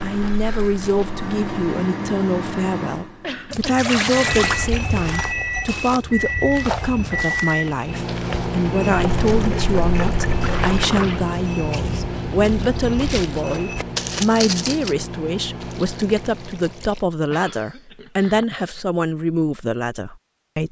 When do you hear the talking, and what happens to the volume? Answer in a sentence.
You can hear the talking from 0.0 to 20.6 s, at a steady volume.